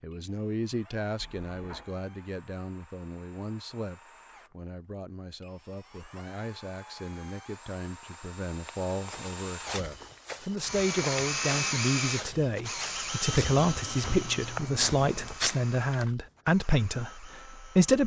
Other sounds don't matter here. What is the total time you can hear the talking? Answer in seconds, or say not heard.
18 s.